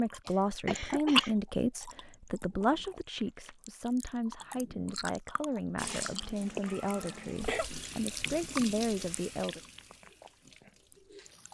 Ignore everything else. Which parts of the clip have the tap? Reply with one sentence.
You can hear the tap from 5.8 to 11.4 s.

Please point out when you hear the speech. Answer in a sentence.
You can hear the speech from 0.0 to 9.6 s.